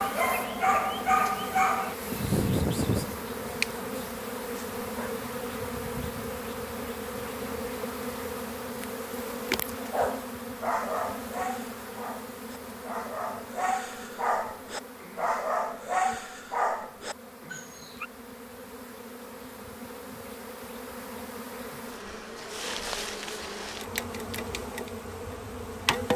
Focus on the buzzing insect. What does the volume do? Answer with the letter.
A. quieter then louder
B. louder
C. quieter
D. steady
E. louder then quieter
A.